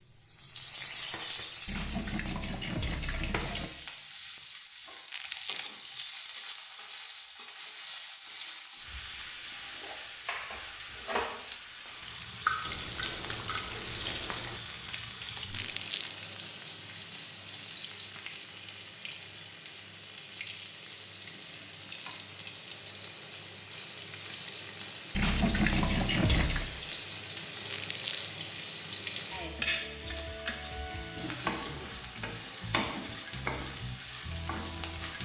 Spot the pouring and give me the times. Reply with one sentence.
You can hear the pouring from 1.6 to 3.7 s, from 12.7 to 14.6 s and from 25.1 to 26.7 s.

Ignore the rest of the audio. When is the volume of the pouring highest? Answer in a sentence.
The loudest moment of the pouring is at 26 seconds.